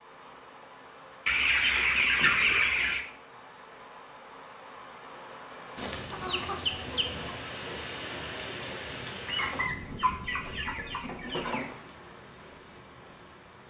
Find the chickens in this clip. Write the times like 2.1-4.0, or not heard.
1.2-3.0, 5.8-7.3, 9.2-11.8.